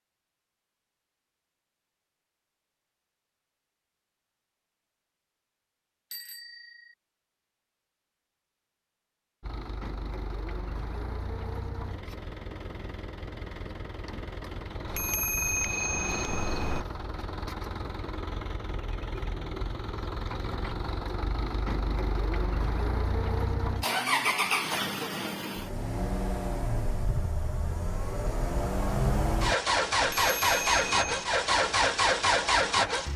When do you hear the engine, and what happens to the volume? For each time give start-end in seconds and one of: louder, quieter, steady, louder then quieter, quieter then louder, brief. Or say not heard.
9.4-33.1 louder.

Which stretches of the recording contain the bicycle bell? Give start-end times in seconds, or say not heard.
6.1-7.0, 14.8-16.9, 30.0-31.3.